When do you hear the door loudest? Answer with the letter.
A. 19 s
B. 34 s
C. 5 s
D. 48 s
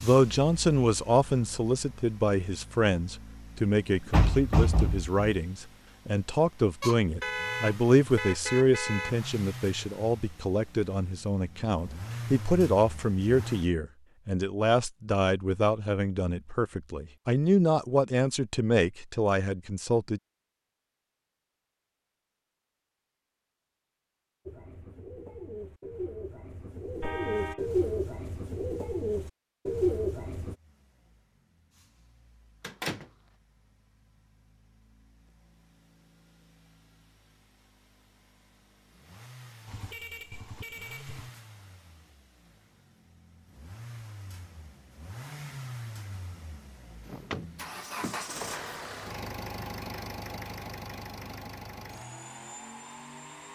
C.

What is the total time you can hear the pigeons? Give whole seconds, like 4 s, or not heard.
6 s.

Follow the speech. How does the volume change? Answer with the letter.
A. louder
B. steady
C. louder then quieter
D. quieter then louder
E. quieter
B.